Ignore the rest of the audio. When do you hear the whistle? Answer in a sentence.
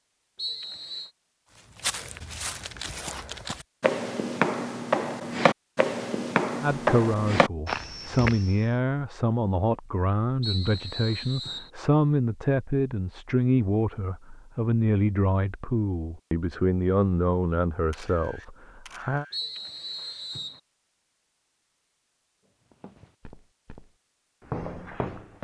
You can hear the whistle from 0.3 to 1.1 s, from 10.4 to 11.7 s and from 19.3 to 20.6 s.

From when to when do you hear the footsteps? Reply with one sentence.
The footsteps can be heard from 1.8 to 8.6 s and from 22.7 to 25.3 s.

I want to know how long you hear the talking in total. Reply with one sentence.
You can hear the talking for 13 seconds altogether.